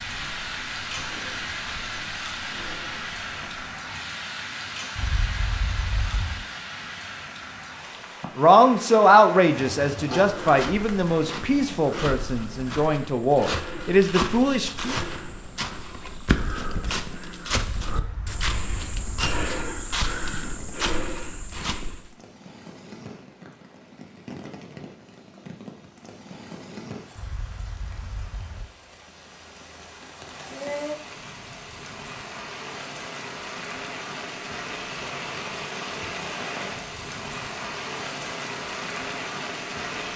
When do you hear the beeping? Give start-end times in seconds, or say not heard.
5.0-6.5, 17.6-19.4, 27.1-28.7.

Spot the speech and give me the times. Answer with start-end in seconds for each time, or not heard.
8.3-14.9.